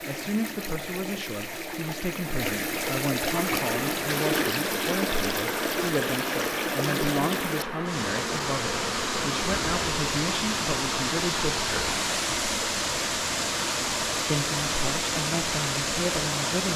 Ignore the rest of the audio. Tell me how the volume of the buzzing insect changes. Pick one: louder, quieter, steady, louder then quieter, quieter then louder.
steady.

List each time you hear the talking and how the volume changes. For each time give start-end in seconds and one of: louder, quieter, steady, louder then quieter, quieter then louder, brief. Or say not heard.
0.0-12.0 steady
14.2-16.7 brief.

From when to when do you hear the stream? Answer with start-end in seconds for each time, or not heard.
0.0-16.7.